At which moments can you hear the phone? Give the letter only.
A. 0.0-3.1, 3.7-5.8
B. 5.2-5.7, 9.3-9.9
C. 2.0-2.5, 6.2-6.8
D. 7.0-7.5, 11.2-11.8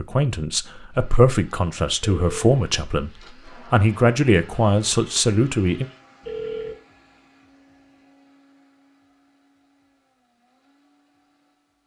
C.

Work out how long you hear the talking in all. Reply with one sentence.
You can hear the talking for 5 seconds altogether.